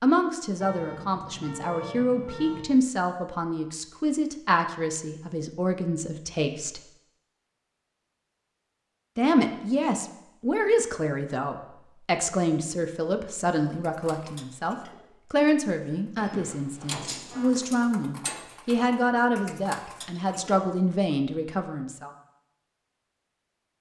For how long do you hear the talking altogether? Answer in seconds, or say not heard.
20 s.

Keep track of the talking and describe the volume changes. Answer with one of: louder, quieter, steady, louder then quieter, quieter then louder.
steady.